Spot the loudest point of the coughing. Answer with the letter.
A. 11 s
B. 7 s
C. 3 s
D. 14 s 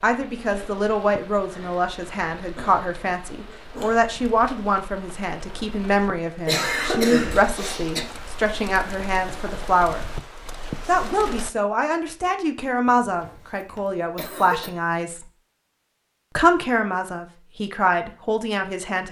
B.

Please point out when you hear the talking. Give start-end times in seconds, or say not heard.
0.0-10.1, 10.8-15.2, 16.4-19.0.